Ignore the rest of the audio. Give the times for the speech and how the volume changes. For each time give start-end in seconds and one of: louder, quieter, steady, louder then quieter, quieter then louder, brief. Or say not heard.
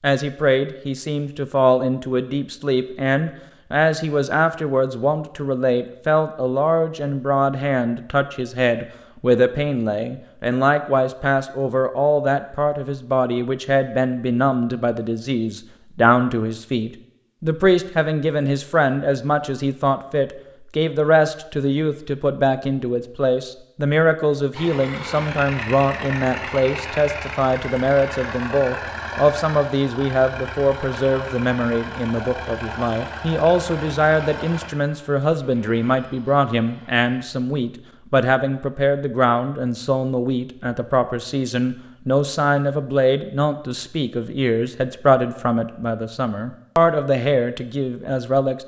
0.0-48.6 steady.